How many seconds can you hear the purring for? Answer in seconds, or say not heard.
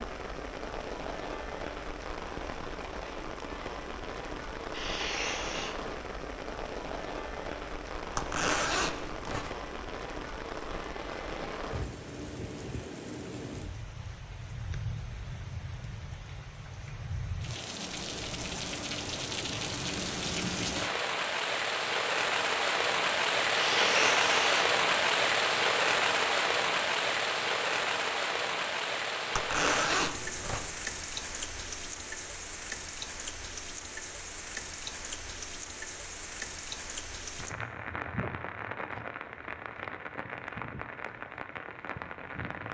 not heard.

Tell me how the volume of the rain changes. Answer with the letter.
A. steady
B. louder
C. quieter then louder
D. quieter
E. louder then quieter
E.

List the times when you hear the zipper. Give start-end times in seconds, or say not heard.
8.2-9.5, 29.3-30.7.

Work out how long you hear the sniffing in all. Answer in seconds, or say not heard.
2 s.